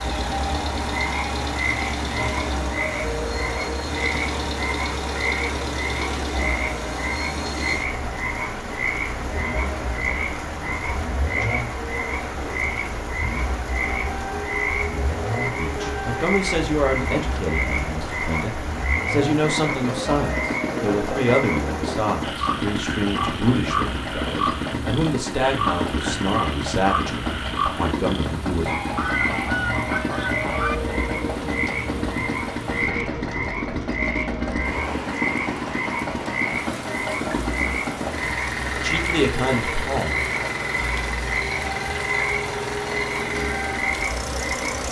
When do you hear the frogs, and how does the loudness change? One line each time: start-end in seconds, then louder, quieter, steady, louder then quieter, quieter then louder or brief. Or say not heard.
0.0-44.8 steady.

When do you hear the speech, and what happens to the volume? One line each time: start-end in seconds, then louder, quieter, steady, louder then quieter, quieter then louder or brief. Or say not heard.
15.4-28.7 steady
38.8-40.1 brief.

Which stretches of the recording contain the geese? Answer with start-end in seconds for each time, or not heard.
28.9-30.8.